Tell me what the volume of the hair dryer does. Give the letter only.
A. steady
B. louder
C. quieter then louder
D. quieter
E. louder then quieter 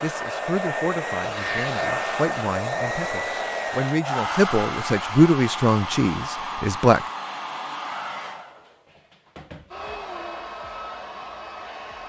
D.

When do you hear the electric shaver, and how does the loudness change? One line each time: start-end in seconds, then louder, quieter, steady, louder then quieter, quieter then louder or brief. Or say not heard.
not heard.